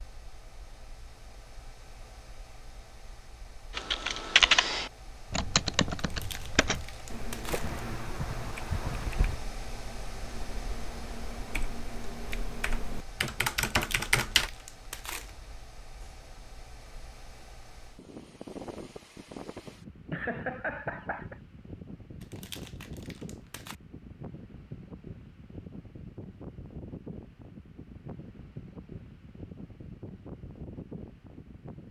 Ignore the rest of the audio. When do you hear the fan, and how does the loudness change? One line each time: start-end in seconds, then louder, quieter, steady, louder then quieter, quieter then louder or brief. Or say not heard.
0.0-31.8 louder.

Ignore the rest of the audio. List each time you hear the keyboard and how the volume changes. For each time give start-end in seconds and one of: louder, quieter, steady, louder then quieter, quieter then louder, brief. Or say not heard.
3.8-14.5 quieter then louder.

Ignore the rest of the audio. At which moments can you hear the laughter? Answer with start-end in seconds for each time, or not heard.
7.5-9.4, 20.1-21.4.